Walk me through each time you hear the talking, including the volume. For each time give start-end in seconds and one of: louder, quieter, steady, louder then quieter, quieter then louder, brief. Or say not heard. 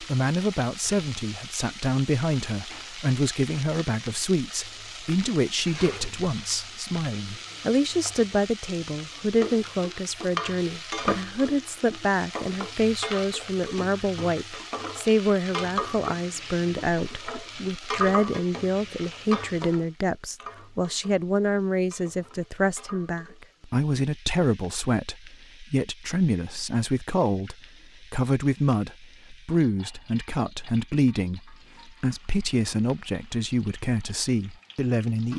0.0-35.3 steady.